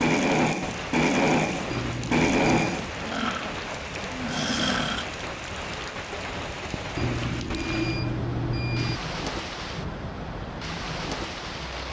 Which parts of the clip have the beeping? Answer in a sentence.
You can hear the beeping from 1.7 to 2.8 s and from 7.0 to 9.0 s.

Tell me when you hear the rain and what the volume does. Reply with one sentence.
You can hear the rain from 0.0 to 11.8 s, at a steady volume.